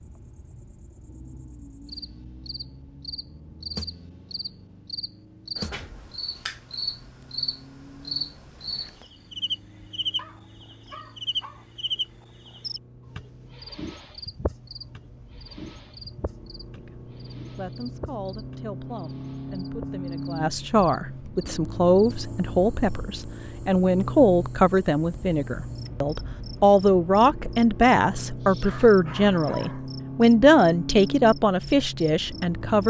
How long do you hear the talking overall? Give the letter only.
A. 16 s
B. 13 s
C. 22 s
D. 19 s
A.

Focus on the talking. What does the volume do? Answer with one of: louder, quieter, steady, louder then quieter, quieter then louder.
louder.